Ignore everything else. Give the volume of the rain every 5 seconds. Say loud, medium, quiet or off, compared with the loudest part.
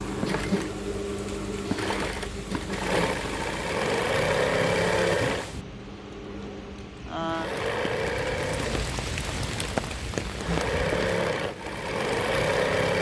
medium, loud, loud.